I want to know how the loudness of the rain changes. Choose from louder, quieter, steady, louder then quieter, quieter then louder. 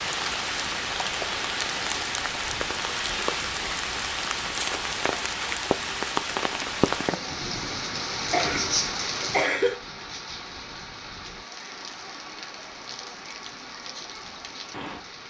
quieter.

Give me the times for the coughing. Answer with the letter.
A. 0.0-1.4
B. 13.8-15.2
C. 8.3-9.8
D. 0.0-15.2
C.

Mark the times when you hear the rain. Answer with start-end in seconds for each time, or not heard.
0.0-15.2.